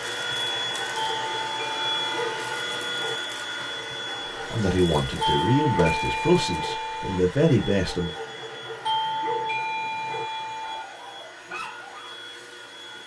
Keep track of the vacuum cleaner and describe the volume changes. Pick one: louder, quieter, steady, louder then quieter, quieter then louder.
quieter.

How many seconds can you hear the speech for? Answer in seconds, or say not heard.
4 s.